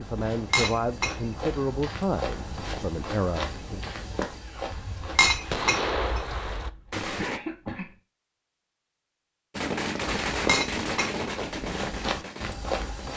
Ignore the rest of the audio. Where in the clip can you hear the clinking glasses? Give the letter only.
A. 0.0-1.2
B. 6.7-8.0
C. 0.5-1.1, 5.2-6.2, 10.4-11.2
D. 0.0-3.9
C.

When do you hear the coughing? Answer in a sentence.
The coughing can be heard from 6.7 to 8.0 s.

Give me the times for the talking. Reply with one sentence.
The talking can be heard from 0.0 to 3.9 s.